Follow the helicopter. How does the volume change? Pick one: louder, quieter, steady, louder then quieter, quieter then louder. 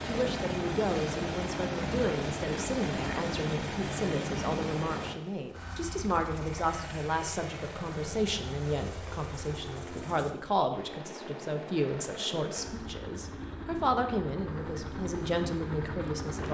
quieter.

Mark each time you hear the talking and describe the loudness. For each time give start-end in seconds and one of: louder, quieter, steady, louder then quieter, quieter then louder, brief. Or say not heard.
0.1-16.4 steady.